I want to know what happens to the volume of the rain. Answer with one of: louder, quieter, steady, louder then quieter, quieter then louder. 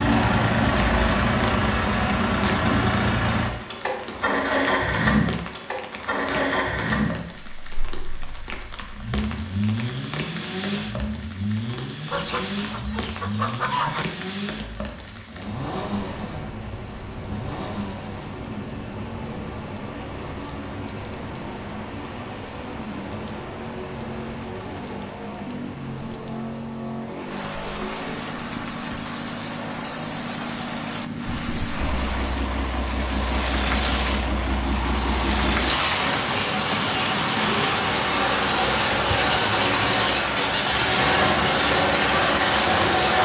louder.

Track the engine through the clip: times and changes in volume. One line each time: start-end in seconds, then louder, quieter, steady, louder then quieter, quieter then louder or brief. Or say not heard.
0.0-43.1 quieter then louder.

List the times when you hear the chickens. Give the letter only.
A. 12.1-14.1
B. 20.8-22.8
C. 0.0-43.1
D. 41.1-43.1
A.